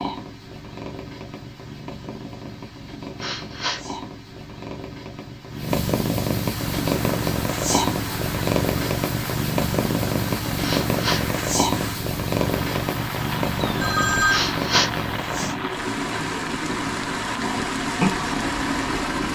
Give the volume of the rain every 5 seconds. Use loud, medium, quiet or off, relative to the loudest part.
off, medium, medium, loud.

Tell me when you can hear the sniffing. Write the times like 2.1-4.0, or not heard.
3.1-3.9, 10.6-11.2, 14.2-14.9.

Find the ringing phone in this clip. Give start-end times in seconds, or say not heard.
13.6-14.4.